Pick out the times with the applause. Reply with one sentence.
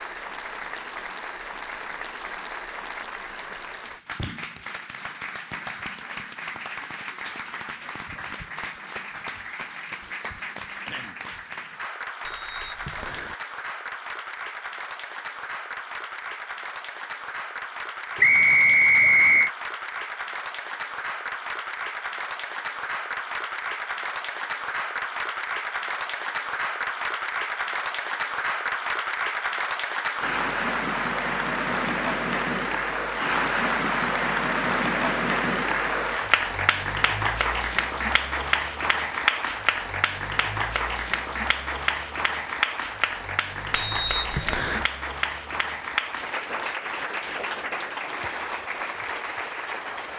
You can hear the applause from 0.0 to 50.1 s.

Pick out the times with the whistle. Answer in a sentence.
The whistle can be heard from 12.2 to 13.3 s, from 18.2 to 19.5 s and from 43.7 to 44.9 s.